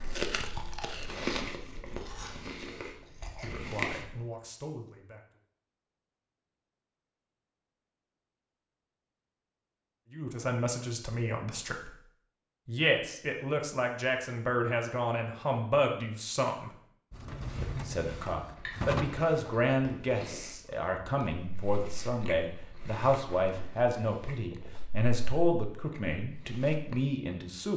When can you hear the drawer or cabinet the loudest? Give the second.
19 s.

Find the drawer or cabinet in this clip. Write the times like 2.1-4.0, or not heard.
17.1-19.3.